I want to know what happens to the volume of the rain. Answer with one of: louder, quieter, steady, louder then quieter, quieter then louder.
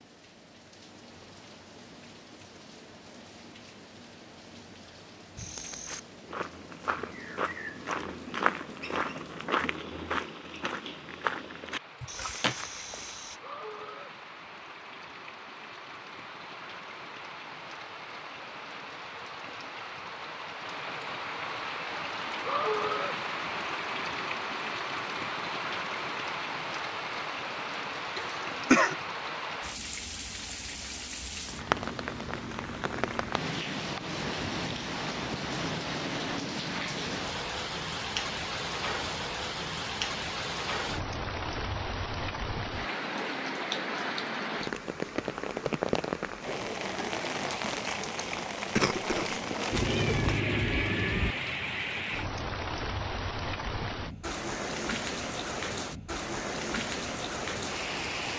louder.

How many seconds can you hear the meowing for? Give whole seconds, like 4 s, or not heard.
2 s.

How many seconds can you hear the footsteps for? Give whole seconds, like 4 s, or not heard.
8 s.